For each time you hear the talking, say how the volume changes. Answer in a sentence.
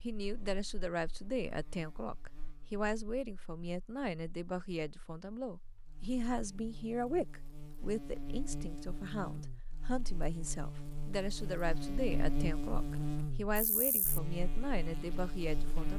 You can hear the talking from 0.0 to 15.9 s, at a steady volume.